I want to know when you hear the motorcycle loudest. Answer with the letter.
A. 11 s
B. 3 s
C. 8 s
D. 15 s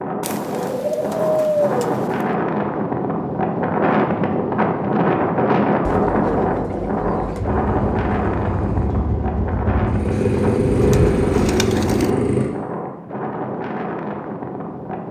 A.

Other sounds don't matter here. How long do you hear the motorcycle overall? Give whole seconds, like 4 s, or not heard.
5 s.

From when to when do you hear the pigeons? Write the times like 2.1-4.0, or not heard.
0.2-2.3, 5.8-7.5, 10.1-12.1.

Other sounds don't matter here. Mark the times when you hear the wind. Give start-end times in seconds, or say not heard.
0.0-15.0.